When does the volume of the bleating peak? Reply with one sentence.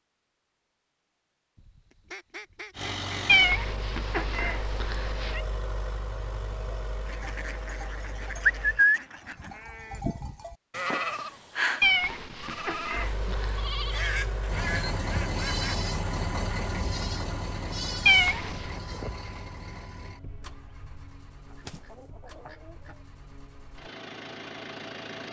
The volume of the bleating peaks at 9 seconds.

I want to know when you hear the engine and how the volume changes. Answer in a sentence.
You can hear the engine from 2.7 to 8.8 s, getting quieter; and from 12.9 to 25.2 s, getting quieter then louder.